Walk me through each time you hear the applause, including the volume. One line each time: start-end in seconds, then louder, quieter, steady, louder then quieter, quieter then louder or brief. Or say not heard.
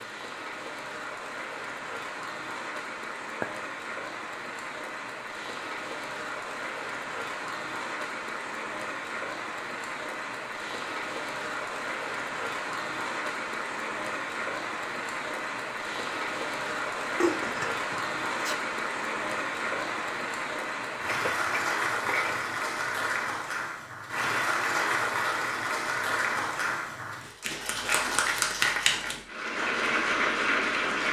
0.0-31.0 louder.